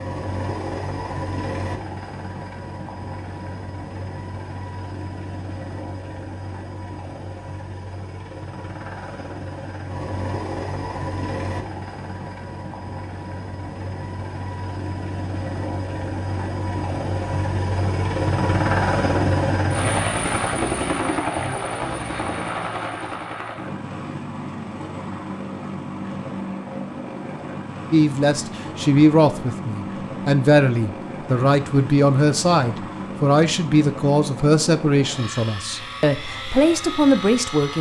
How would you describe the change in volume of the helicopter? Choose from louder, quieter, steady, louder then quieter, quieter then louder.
louder then quieter.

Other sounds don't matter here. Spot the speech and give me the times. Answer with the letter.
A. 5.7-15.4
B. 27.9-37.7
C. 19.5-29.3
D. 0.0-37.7
B.